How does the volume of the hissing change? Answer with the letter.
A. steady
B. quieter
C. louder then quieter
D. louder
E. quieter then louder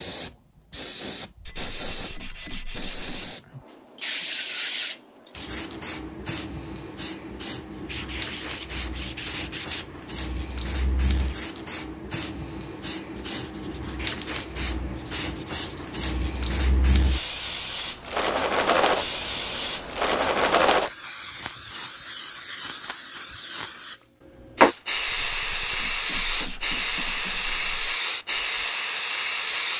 E.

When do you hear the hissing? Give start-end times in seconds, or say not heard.
0.0-29.7.